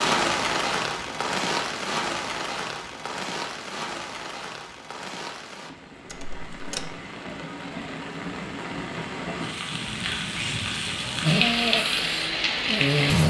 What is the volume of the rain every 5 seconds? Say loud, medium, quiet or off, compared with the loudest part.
loud, medium, loud.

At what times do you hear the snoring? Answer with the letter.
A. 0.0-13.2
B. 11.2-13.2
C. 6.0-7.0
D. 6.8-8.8
B.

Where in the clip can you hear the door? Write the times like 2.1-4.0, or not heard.
6.0-7.0.